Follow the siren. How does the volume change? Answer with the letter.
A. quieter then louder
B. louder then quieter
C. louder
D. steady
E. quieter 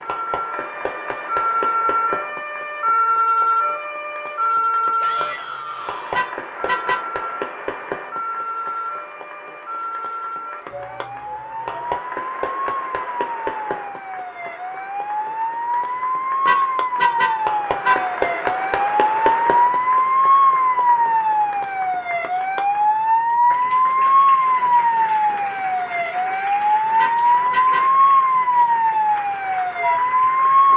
A.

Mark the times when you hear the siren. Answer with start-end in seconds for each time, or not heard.
0.0-30.7.